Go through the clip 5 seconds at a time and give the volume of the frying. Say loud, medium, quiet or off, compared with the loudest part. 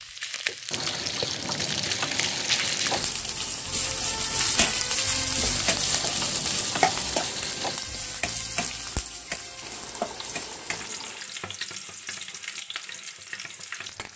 loud, loud, medium.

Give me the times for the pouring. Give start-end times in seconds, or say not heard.
0.7-3.2, 5.4-7.8, 9.6-11.2.